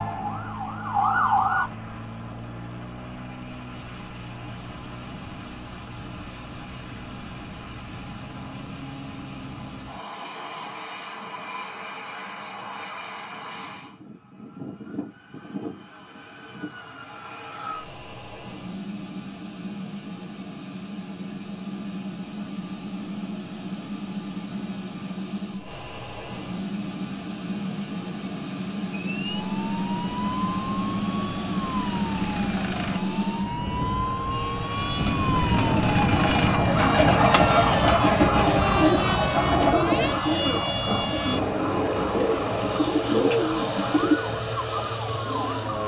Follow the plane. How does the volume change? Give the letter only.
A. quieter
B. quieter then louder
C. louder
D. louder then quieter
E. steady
C.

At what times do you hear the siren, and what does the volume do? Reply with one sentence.
You can hear the siren briefly from 0.0 to 1.7 s; and from 29.1 to 45.8 s, getting louder then quieter.